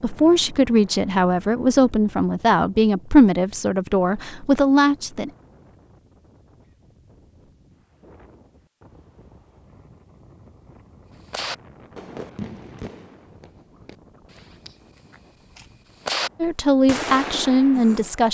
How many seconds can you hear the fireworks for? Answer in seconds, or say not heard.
7 s.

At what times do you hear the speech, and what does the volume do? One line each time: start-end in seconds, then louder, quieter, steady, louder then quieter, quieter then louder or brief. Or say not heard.
0.0-5.3 steady
16.4-18.2 brief.